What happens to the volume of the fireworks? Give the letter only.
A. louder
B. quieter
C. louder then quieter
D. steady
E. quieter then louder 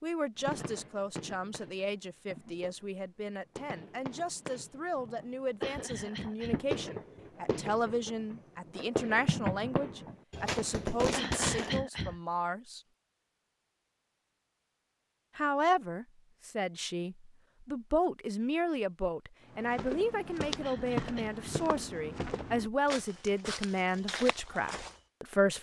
A.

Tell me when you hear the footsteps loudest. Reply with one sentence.
The volume of the footsteps peaks at 21 seconds.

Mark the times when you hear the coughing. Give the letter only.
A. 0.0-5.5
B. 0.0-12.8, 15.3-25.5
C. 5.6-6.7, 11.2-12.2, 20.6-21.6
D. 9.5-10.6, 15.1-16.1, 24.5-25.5
C.